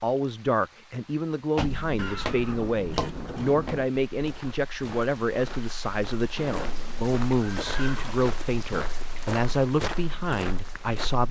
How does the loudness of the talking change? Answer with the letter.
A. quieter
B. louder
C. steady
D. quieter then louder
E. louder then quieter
C.